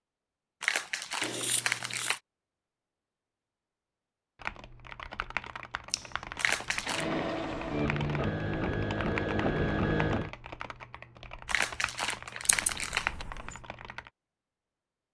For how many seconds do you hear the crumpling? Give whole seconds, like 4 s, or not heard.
4 s.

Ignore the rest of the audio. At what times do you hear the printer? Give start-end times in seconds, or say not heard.
6.8-10.3.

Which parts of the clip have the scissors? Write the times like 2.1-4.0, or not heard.
1.2-2.2, 5.9-6.8, 12.4-13.5.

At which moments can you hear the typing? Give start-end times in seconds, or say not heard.
4.4-14.1.